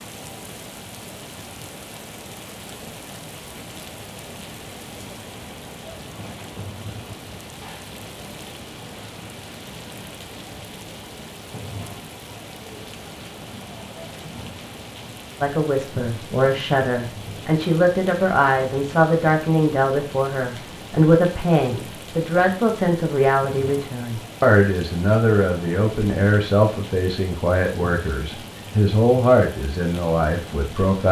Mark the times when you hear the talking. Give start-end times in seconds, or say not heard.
15.4-31.0.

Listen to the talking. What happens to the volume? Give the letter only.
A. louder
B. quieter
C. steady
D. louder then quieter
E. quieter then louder
C.